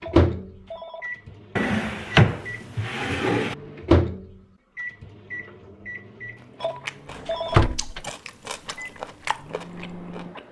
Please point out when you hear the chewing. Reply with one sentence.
The chewing can be heard from 6.3 to 10.4 s.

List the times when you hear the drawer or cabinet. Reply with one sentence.
You can hear the drawer or cabinet from 1.6 to 3.5 s and from 7.2 to 8.0 s.